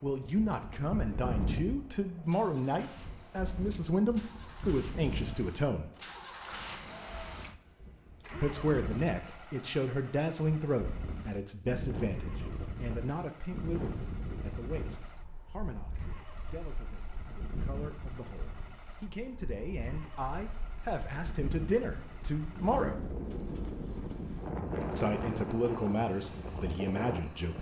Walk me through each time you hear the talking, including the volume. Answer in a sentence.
The talking can be heard from 0.0 to 5.9 s, at a steady volume; from 8.3 to 23.0 s, getting quieter then louder; and briefly from 24.9 to 27.5 s.